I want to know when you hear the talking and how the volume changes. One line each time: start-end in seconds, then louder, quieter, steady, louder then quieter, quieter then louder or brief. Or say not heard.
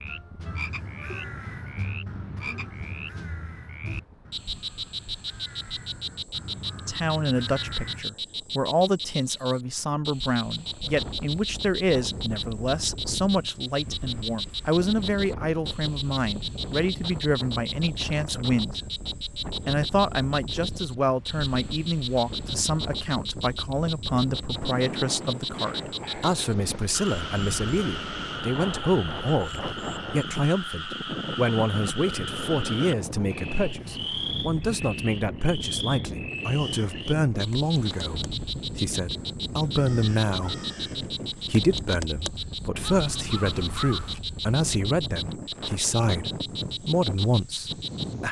6.8-18.8 steady
19.5-40.5 steady
41.3-48.2 louder.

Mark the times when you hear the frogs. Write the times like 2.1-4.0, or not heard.
0.0-48.2.